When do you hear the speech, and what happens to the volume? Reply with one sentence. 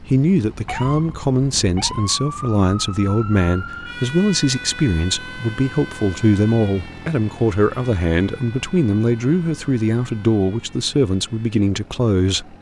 You can hear the speech from 0.0 to 12.5 s, at a steady volume.